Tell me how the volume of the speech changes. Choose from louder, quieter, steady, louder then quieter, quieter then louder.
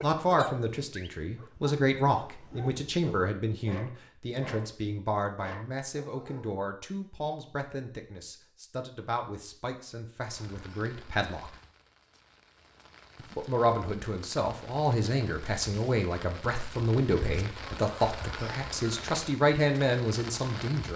quieter then louder.